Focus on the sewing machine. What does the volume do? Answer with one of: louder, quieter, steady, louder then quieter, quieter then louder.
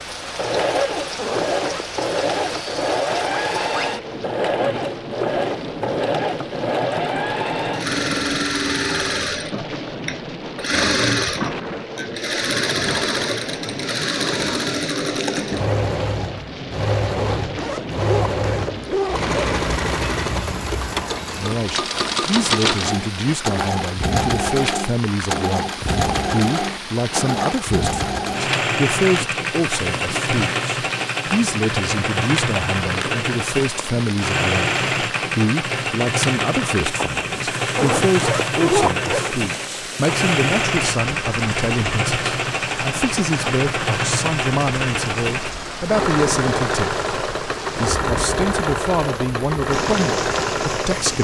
steady.